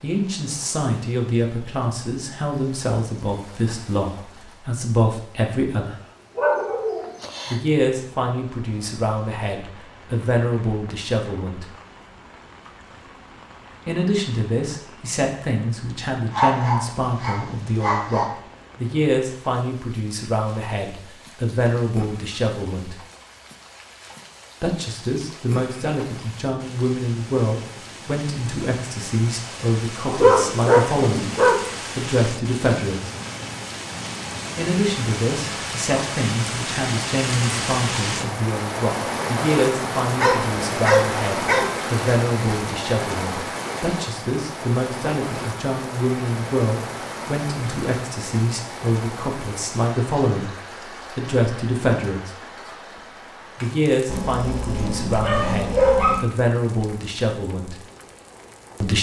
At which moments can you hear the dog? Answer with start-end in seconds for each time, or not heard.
6.3-7.1, 16.3-18.2, 30.1-31.6, 40.2-41.6, 54.0-56.2.